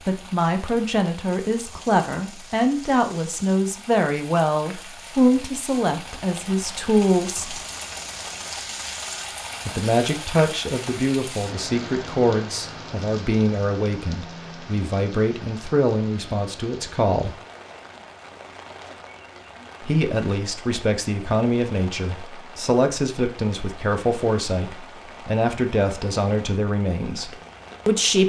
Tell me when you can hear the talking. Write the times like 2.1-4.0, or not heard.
0.1-7.6, 9.7-17.4, 19.8-28.2.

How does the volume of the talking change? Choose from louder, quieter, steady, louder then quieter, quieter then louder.
steady.